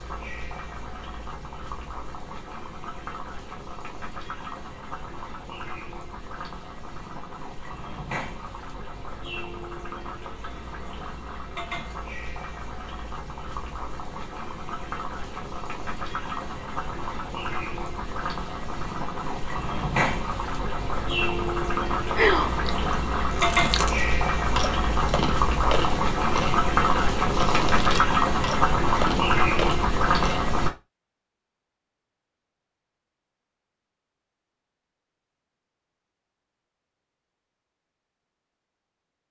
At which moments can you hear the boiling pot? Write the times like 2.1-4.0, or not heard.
0.0-30.7.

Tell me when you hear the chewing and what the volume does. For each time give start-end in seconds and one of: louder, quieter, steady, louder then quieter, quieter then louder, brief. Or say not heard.
22.1-30.4 steady.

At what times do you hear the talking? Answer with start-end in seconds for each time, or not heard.
not heard.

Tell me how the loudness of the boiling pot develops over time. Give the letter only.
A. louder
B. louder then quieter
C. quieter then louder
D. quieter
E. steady
A.